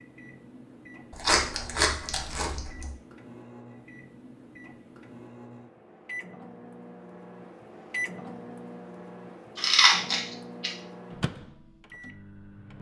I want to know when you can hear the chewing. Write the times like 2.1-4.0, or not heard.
1.1-2.9, 9.6-10.7.